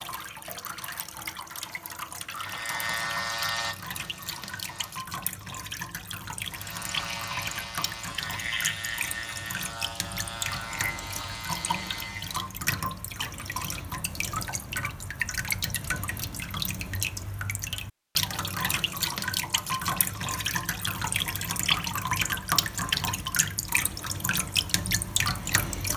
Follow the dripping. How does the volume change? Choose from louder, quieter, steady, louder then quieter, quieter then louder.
louder.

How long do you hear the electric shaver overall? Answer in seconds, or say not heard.
9 s.